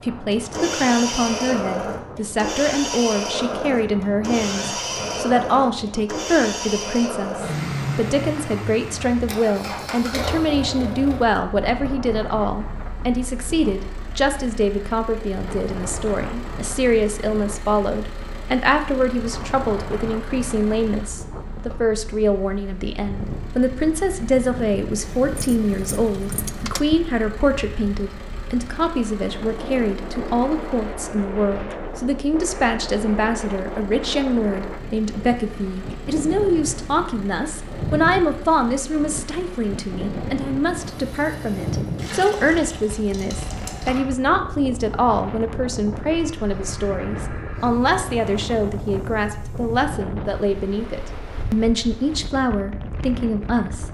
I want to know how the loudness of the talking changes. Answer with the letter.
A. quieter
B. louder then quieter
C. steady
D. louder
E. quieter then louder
C.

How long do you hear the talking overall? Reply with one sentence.
You can hear the talking for 54 seconds altogether.